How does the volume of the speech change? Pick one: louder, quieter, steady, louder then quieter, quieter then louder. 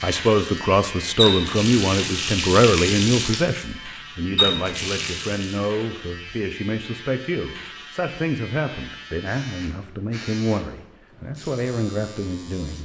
quieter.